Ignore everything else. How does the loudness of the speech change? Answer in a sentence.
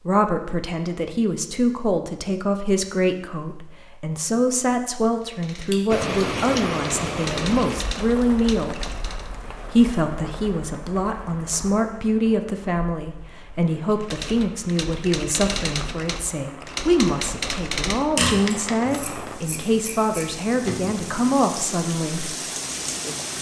The volume of the speech stays about the same.